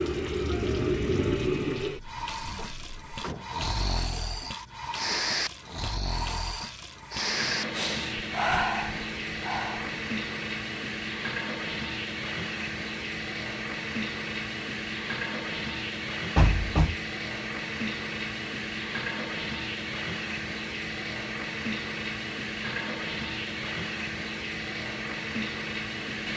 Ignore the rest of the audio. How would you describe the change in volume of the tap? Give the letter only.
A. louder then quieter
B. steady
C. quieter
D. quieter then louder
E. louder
B.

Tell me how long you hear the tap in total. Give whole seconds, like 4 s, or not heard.
26 s.